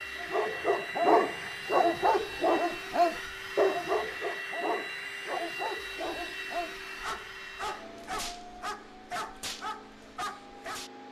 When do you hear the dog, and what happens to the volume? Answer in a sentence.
You can hear the dog from 0.2 to 10.9 s, getting quieter.